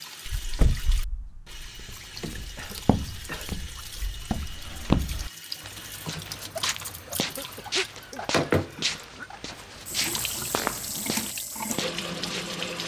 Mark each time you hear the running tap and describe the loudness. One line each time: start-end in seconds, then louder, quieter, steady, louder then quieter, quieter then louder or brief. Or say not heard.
0.0-12.8 louder.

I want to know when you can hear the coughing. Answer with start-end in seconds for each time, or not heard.
2.5-3.6, 7.2-9.3.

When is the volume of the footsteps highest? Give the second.
5 s.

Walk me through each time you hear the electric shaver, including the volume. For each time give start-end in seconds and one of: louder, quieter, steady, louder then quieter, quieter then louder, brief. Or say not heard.
not heard.